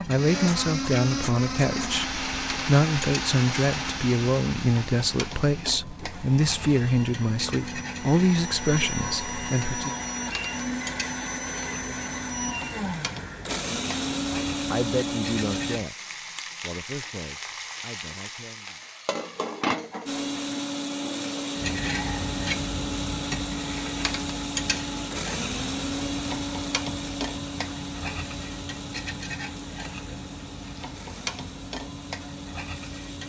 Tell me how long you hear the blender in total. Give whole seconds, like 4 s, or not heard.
29 s.